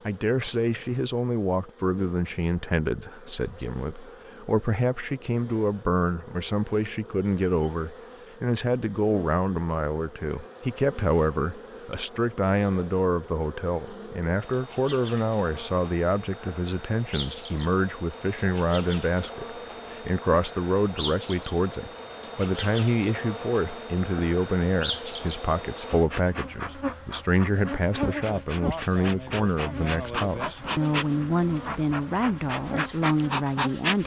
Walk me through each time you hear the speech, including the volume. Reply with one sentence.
The speech can be heard from 0.1 to 34.0 s, at a steady volume.